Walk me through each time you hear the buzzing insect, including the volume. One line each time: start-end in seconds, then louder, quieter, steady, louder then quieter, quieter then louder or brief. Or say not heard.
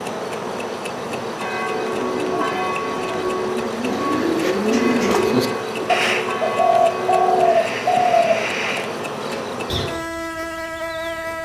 0.0-11.4 steady.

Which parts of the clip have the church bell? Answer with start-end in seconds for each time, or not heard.
1.4-7.5.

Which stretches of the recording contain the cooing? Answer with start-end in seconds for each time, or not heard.
1.6-9.9.